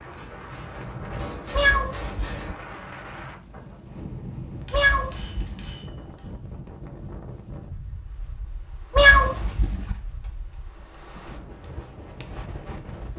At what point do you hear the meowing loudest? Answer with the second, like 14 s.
9 s.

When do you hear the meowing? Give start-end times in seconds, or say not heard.
1.5-2.5, 4.7-5.7, 8.9-9.9.